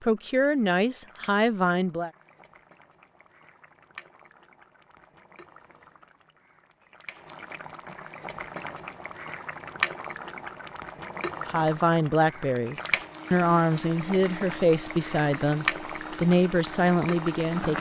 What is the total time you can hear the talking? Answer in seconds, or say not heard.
8 s.